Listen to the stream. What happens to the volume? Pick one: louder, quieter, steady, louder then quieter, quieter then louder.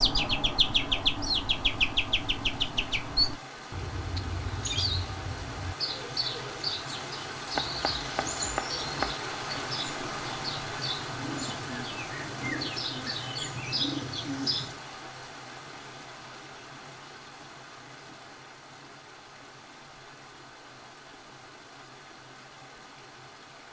louder then quieter.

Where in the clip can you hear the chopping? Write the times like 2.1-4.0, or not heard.
7.5-9.2.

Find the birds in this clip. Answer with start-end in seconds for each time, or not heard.
0.0-14.8.